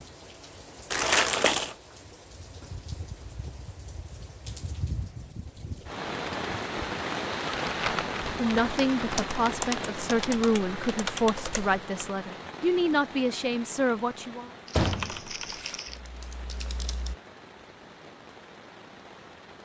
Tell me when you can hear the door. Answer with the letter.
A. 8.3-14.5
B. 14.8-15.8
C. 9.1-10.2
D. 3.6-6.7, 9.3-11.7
B.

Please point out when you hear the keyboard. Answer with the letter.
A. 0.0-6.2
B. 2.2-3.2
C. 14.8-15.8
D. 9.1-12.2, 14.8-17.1
D.